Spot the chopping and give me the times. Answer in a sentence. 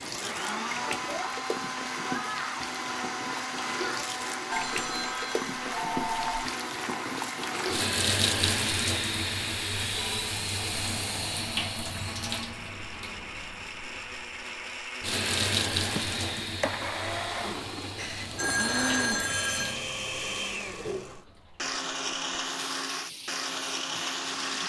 The chopping can't be heard in this clip.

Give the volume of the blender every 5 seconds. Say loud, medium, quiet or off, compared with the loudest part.
loud, loud, medium, loud, loud.